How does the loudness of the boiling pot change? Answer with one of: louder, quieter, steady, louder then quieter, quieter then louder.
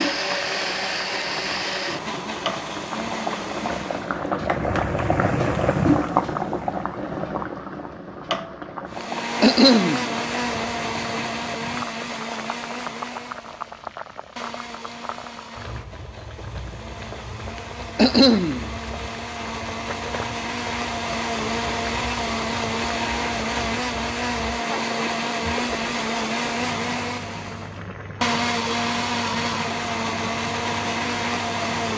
quieter.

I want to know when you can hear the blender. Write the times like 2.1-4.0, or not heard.
0.0-4.3, 8.8-31.9.